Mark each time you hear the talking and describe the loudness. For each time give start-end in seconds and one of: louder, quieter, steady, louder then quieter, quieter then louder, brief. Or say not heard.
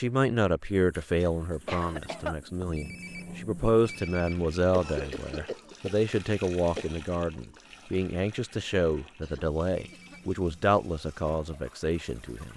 0.0-12.5 steady.